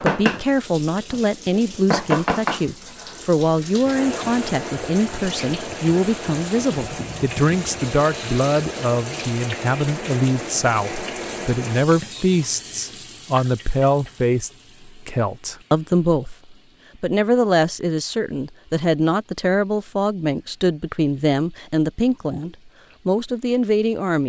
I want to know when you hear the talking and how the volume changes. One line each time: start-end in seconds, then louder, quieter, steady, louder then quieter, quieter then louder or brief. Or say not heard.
0.0-24.2 steady.